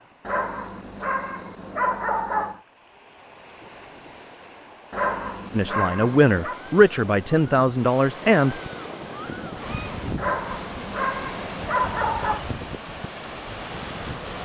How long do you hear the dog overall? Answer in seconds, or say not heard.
6 s.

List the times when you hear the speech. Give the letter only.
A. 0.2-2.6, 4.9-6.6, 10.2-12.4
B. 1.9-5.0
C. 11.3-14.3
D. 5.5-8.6
D.